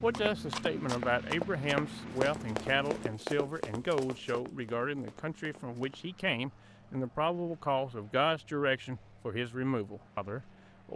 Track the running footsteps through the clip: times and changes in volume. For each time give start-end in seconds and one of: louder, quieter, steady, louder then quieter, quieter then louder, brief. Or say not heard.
0.0-6.0 quieter.